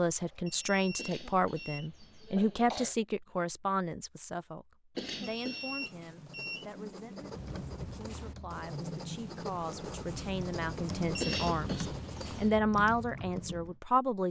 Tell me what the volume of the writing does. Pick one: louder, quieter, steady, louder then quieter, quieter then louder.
louder.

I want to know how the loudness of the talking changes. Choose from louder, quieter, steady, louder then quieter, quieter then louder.
quieter then louder.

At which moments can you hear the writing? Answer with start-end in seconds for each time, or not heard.
5.8-12.7.